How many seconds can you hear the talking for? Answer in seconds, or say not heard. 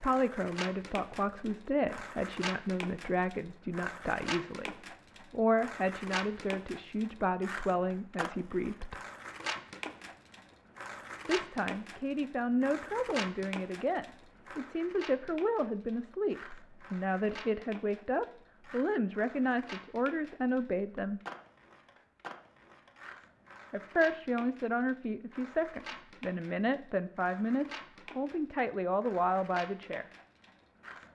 25 s.